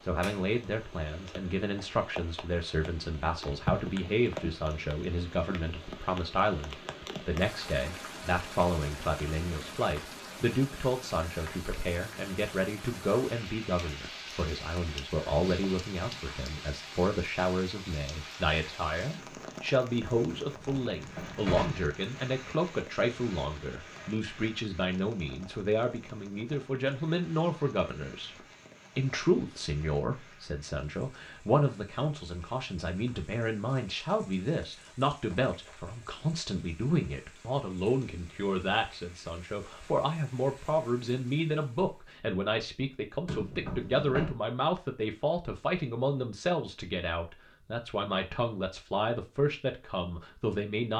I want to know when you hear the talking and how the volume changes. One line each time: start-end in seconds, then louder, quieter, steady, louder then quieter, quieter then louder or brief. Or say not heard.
0.0-28.4 steady
28.9-50.9 steady.